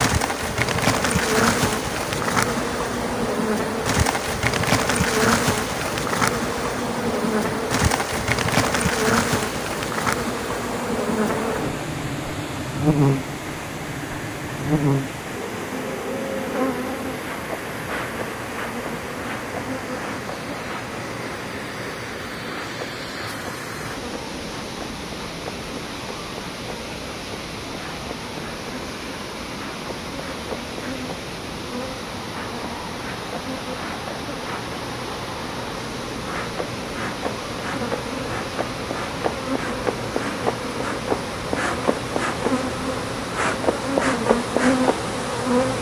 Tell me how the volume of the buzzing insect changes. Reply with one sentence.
The loudness of the buzzing insect goes down, then up.